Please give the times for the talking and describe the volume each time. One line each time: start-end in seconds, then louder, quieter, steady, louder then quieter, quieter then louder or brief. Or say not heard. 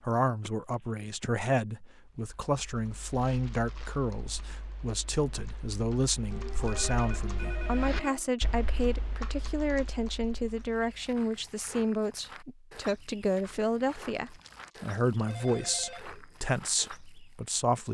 0.0-17.8 steady.